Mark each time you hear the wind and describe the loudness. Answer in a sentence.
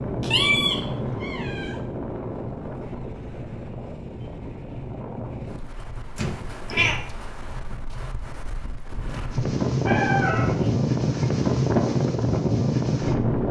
You can hear the wind from 0.0 to 13.4 s, getting quieter then louder.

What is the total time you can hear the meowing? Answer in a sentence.
You can hear the meowing for 3 seconds altogether.